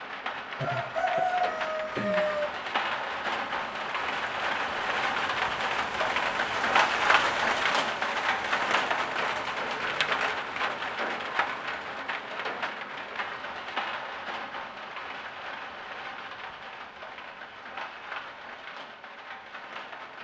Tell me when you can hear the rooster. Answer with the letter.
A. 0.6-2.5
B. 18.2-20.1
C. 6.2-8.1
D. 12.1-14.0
A.